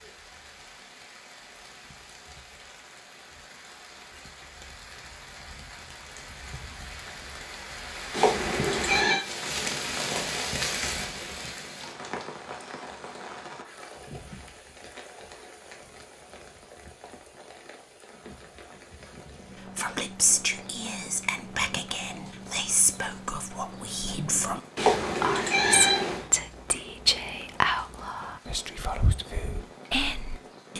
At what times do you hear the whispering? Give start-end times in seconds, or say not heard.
19.6-30.7.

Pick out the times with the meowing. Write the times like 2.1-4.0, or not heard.
8.1-9.2, 24.8-26.2.